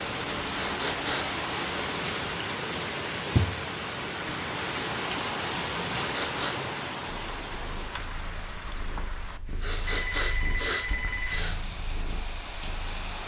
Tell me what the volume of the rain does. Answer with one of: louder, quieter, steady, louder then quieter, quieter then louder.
quieter.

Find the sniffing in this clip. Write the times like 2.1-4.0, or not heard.
0.5-1.6, 5.8-6.5, 9.6-11.6.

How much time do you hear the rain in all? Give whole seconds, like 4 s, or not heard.
13 s.